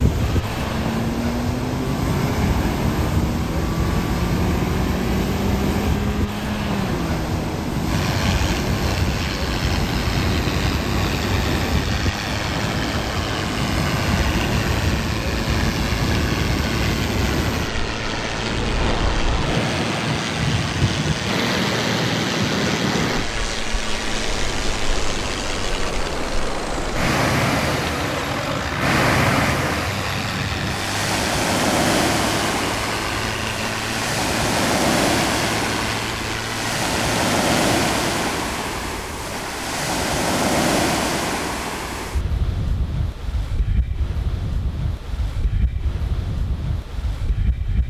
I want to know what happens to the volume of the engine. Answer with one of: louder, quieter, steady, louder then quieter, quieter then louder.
steady.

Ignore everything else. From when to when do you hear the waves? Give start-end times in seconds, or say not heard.
0.0-47.8.